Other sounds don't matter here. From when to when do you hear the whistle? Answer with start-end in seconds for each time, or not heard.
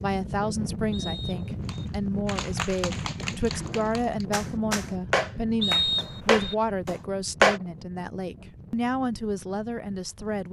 0.9-1.8, 5.6-6.5.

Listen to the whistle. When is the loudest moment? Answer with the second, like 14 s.
6 s.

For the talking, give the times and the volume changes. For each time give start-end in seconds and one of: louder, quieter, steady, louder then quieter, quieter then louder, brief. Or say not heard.
0.0-10.4 steady.